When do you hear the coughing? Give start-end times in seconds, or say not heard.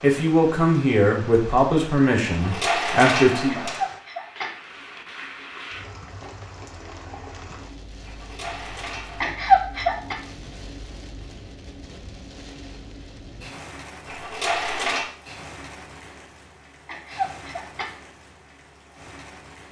3.5-4.5, 9.2-10.2, 16.9-17.9.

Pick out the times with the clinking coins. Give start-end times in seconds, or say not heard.
2.2-3.8, 8.0-9.3, 14.1-15.1.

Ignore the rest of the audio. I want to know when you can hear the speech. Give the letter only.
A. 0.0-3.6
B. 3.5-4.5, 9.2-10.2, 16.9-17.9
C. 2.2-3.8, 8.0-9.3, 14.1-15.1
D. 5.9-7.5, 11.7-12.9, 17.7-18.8
A.